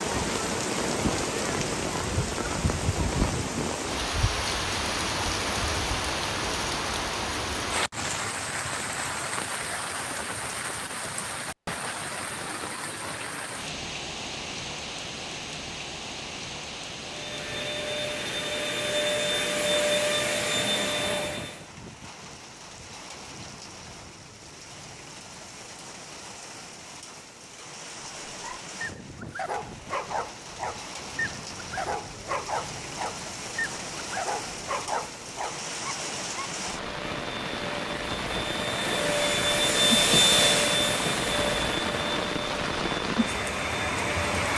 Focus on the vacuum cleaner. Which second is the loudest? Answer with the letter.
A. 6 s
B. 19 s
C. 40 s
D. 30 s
C.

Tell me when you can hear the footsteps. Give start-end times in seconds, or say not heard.
not heard.